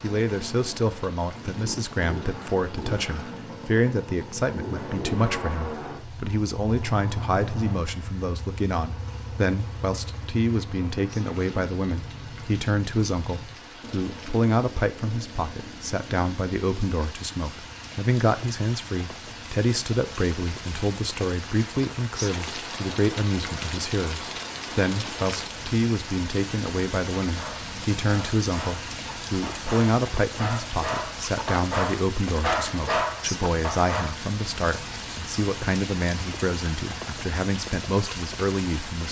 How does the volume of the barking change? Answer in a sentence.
The volume of the barking goes up.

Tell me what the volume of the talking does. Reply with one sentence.
The volume of the talking stays about the same.